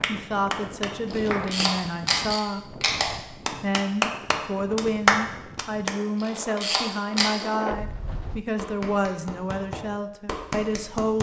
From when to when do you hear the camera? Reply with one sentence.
The camera can be heard from 1.1 to 3.0 s and from 6.2 to 7.5 s.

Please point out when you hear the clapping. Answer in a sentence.
You can hear the clapping from 0.0 to 1.7 s, from 3.5 to 6.0 s and from 8.6 to 11.1 s.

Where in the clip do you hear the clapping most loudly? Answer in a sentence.
The loudest moment of the clapping is at 5 seconds.